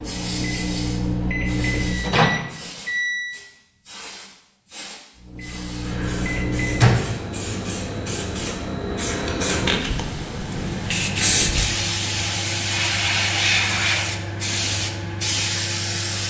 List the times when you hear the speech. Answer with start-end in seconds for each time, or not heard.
not heard.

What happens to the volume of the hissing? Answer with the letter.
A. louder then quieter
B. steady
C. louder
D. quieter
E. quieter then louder
C.